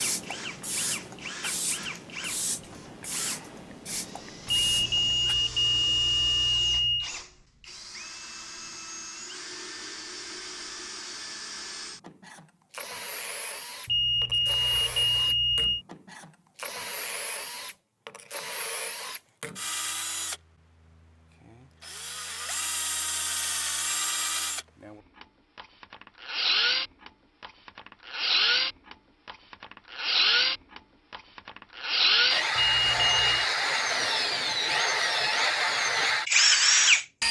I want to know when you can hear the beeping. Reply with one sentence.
You can hear the beeping from 4.5 to 7.1 s, from 13.8 to 15.8 s and from 32.5 to 33.5 s.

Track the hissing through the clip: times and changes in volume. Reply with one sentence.
The hissing can be heard from 0.0 to 5.3 s, at a steady volume.